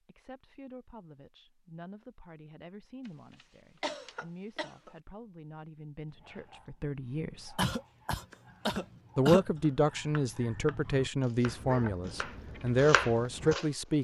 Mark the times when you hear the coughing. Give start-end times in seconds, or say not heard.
3.8-4.9, 7.5-9.4.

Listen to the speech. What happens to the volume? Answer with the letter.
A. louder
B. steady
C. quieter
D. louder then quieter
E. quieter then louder
A.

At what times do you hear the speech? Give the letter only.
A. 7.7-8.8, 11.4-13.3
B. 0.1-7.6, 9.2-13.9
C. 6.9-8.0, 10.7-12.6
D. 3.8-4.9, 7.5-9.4
B.